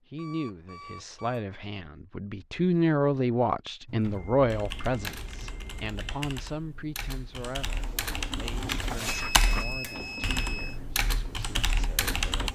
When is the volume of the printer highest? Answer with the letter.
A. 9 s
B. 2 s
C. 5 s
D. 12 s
A.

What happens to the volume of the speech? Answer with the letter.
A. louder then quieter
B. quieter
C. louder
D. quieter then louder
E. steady
A.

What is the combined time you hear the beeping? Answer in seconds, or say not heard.
5 s.